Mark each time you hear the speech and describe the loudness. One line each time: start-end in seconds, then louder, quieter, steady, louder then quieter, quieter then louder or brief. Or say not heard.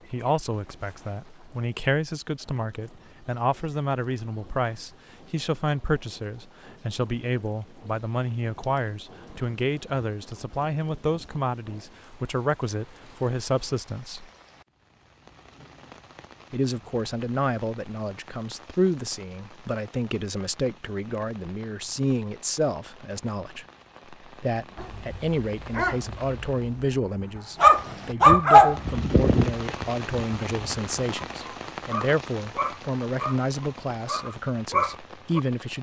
0.1-14.2 steady
16.5-35.7 steady.